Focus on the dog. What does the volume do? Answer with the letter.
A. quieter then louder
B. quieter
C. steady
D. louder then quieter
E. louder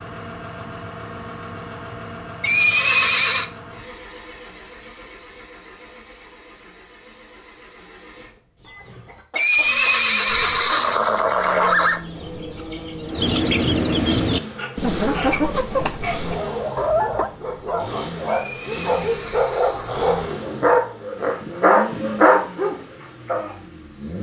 E.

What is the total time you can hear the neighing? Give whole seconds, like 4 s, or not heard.
6 s.